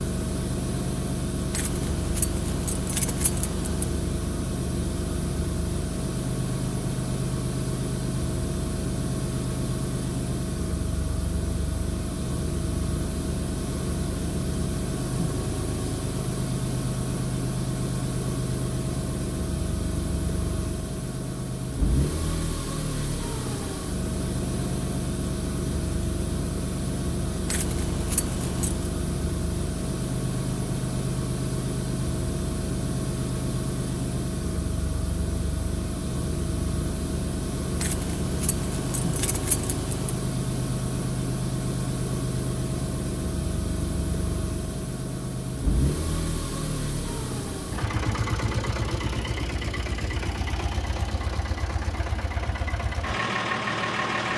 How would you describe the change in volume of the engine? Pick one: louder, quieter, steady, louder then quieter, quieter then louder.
steady.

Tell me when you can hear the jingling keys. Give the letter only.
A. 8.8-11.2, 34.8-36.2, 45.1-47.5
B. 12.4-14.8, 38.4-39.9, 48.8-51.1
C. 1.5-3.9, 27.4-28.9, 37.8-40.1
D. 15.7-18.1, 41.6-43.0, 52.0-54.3
C.